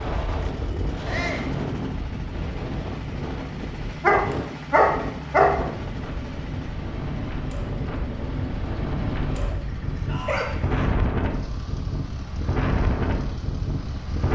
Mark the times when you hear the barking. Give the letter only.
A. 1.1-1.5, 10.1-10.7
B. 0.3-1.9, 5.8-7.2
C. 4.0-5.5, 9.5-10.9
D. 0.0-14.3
C.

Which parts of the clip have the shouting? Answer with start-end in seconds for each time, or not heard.
1.1-1.5, 10.1-10.7.